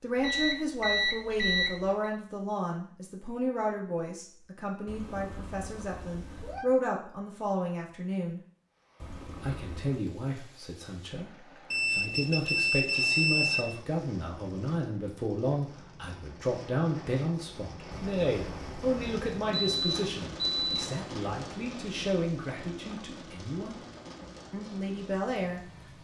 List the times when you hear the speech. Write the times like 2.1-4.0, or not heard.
0.0-8.4, 9.4-23.9, 24.5-25.6.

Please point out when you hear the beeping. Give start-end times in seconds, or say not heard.
0.1-2.0, 11.7-13.7, 19.8-20.9.